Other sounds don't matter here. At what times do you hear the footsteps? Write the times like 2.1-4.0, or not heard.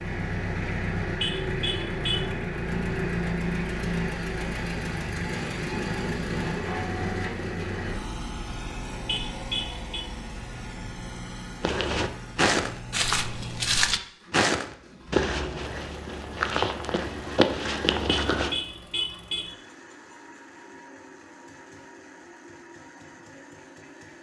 11.6-18.6.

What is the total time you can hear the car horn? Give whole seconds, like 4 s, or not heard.
4 s.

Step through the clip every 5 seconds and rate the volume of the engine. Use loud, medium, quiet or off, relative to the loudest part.
loud, loud, medium, quiet, quiet.